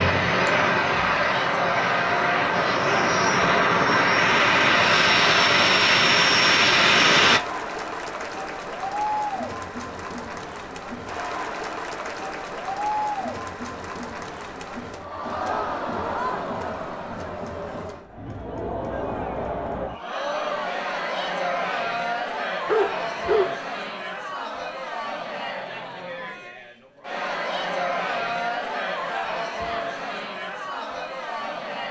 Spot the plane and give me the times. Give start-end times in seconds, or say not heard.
0.0-7.4.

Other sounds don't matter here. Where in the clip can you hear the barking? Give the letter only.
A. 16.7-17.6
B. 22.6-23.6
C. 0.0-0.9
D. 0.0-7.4
B.